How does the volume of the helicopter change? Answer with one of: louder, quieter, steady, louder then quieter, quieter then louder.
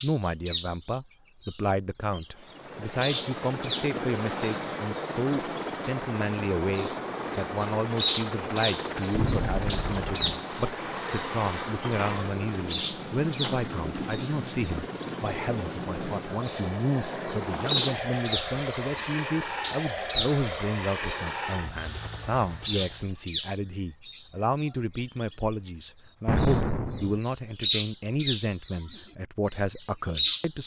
steady.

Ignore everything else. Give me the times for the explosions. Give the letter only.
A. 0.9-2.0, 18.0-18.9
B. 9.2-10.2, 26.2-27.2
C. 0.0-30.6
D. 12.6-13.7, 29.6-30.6
B.